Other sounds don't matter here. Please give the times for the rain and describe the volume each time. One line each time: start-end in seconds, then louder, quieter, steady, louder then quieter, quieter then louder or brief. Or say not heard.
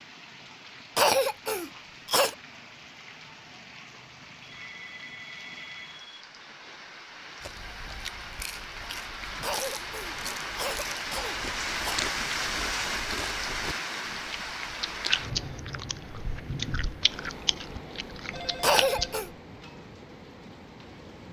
0.0-21.2 louder then quieter.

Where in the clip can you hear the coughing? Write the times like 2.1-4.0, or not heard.
0.9-2.4, 9.4-12.1, 18.6-19.3.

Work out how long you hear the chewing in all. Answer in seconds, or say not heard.
12 s.